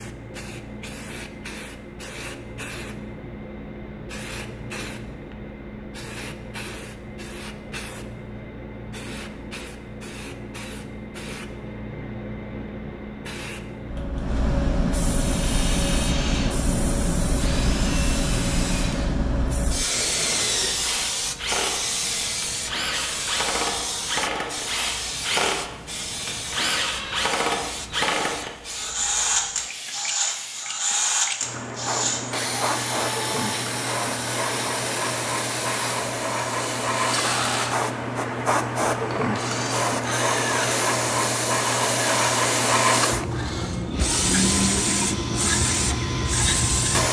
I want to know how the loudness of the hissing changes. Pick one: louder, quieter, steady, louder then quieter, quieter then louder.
louder.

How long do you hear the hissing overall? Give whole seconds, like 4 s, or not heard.
47 s.